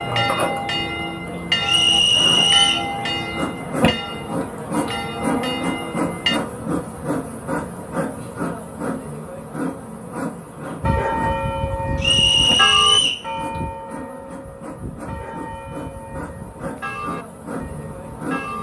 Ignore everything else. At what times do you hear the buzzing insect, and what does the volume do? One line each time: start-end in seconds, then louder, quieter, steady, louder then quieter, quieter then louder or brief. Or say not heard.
0.0-18.5 quieter.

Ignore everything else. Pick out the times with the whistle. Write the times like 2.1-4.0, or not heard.
1.6-2.9, 12.0-13.2.